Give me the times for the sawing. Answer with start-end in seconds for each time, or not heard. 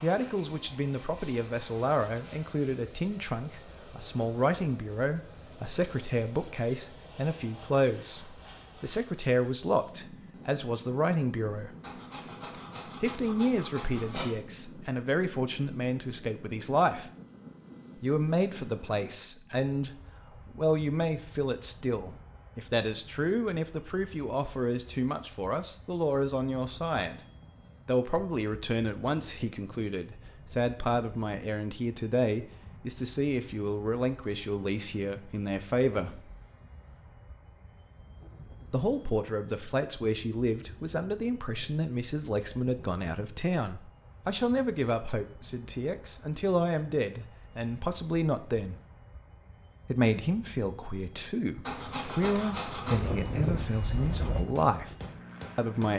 11.8-14.2, 51.6-53.1.